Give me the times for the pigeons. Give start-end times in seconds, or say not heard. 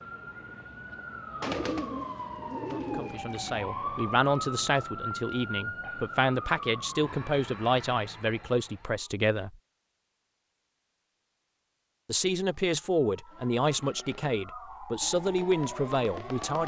1.4-3.7.